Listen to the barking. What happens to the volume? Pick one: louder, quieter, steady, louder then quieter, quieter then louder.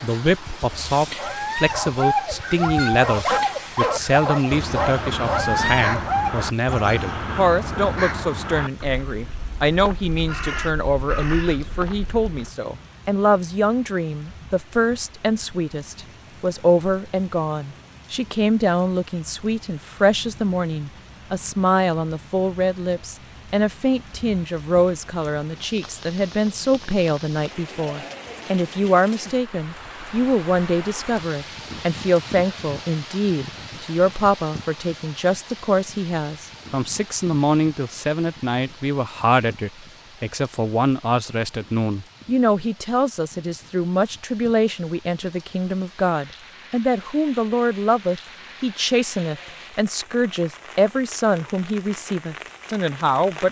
steady.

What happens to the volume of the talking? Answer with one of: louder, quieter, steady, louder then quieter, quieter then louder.
steady.